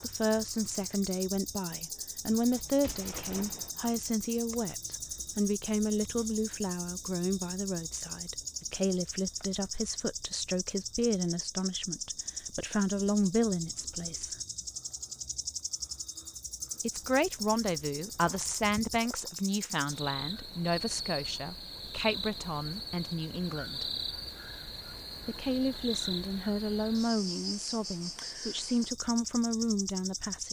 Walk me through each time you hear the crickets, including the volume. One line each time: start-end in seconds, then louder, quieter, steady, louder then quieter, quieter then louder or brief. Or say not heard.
0.0-30.4 steady.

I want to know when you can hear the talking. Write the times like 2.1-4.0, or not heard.
0.0-14.3, 16.8-23.9, 25.2-30.4.